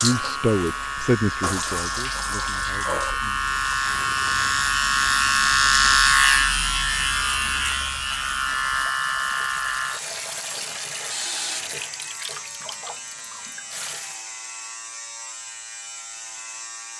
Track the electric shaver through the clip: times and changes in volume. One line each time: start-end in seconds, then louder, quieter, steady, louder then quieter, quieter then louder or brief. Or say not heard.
0.0-16.9 louder then quieter.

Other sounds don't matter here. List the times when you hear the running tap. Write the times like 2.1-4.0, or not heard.
0.0-14.2.